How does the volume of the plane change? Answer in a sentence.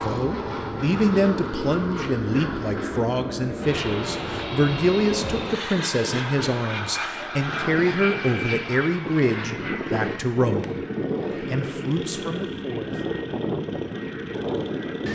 The loudness of the plane stays about the same.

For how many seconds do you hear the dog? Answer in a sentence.
The dog can't be heard in this clip.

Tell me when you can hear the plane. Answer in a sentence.
You can hear the plane from 0.0 to 15.1 s.